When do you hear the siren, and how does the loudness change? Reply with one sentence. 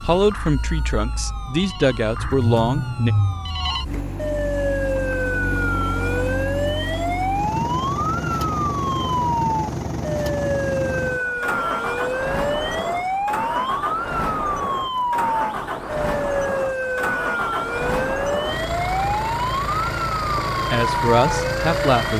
The siren can be heard from 0.0 to 22.1 s, getting louder.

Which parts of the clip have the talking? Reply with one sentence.
The talking can be heard from 0.1 to 3.1 s and from 20.7 to 22.1 s.